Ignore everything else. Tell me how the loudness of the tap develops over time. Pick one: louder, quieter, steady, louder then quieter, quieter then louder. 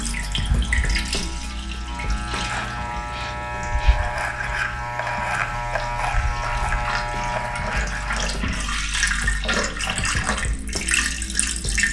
quieter then louder.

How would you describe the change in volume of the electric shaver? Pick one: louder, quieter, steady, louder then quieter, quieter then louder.
louder.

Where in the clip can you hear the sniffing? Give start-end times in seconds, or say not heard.
2.5-4.0.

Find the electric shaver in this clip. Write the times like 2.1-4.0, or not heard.
0.0-8.4.